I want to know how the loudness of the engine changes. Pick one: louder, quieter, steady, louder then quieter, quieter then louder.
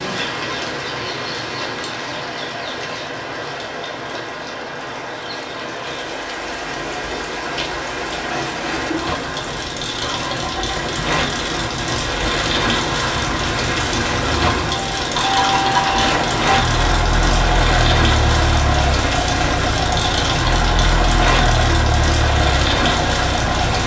louder.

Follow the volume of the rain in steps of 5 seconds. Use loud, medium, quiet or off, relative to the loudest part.
medium, medium, loud, loud, loud.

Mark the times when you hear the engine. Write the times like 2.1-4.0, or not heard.
0.0-23.8.